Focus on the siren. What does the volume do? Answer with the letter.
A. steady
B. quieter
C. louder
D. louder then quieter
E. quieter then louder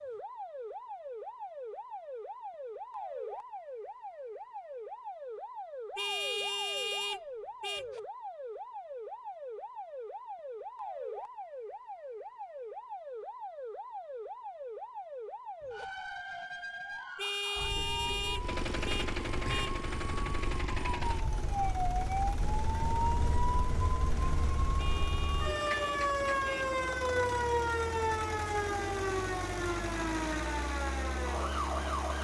C.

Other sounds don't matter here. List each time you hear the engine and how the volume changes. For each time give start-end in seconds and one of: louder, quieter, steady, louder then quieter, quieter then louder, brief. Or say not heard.
18.4-32.1 quieter then louder.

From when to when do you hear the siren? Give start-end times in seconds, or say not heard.
0.0-32.1.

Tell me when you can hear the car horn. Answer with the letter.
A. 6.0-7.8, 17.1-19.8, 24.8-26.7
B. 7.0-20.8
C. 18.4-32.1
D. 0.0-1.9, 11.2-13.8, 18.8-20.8
A.